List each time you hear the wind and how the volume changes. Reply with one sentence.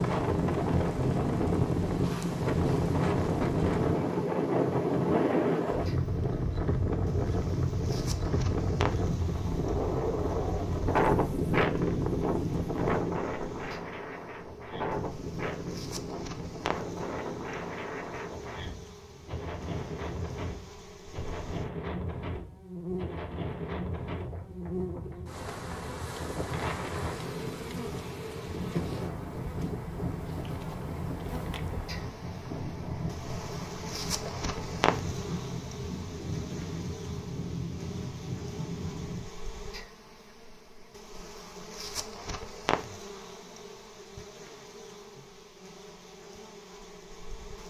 You can hear the wind from 0.0 to 39.3 s, getting quieter.